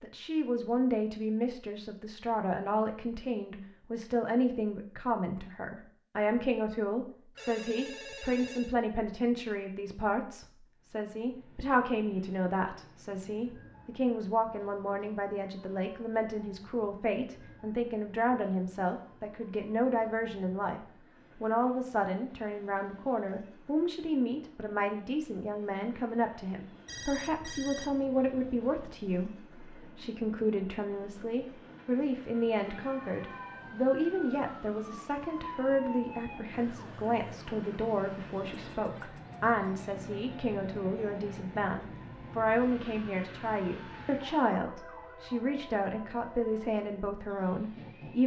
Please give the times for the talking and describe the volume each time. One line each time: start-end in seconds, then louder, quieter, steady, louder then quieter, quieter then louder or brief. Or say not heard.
0.0-48.2 steady.